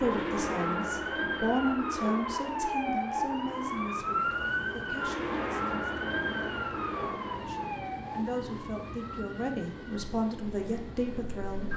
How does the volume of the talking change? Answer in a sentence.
The loudness of the talking goes down, then up.